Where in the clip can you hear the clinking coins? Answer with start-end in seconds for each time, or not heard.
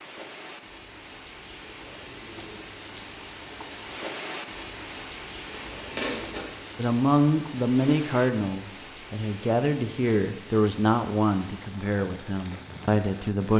5.5-6.5.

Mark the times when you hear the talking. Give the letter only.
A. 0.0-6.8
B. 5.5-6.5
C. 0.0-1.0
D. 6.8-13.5
D.